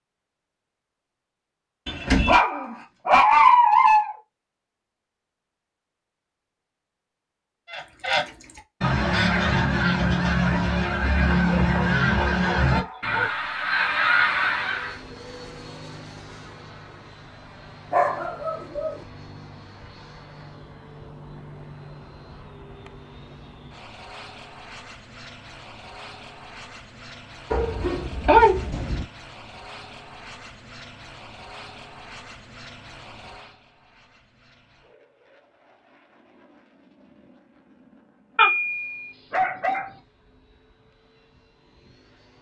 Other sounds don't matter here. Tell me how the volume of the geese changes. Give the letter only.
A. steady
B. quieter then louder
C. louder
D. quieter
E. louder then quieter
A.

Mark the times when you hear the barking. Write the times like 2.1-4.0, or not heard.
1.9-4.2, 11.3-13.3, 17.9-18.9, 27.5-29.1, 38.4-39.9.